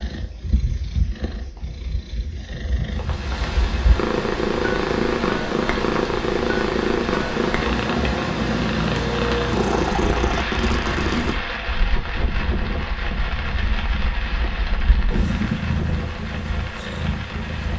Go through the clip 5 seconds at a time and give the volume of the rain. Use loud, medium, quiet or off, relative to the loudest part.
loud, loud, loud, medium.